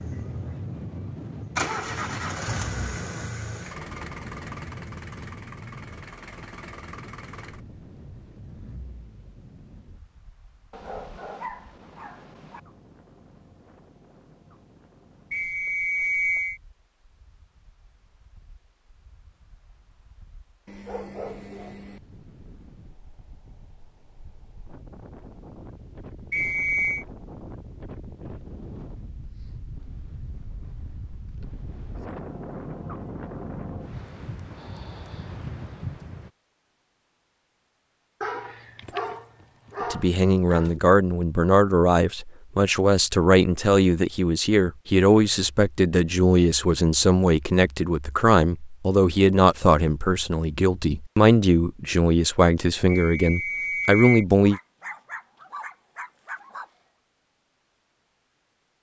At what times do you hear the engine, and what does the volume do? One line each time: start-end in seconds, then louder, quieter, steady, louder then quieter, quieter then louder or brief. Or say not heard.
0.0-9.8 quieter.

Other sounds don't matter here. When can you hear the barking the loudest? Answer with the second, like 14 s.
39 s.